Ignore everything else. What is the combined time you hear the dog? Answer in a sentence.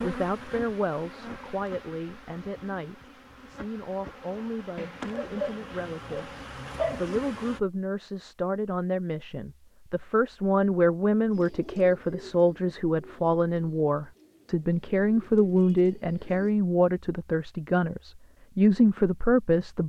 You can hear the dog for 2 seconds altogether.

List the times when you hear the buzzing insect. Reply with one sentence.
You can hear the buzzing insect from 0.0 to 7.6 s.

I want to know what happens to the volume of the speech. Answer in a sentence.
The loudness of the speech goes up.